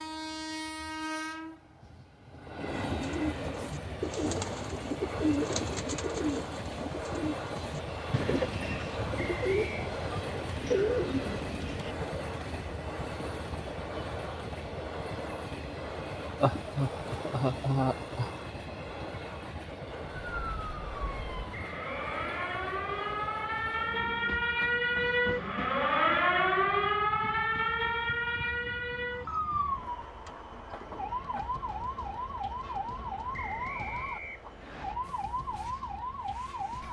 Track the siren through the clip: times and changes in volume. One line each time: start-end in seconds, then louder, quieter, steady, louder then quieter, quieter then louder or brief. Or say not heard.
20.1-36.8 louder then quieter.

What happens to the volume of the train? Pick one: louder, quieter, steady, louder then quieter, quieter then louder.
quieter.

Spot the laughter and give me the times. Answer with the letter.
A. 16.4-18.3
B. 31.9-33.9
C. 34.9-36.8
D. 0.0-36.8
A.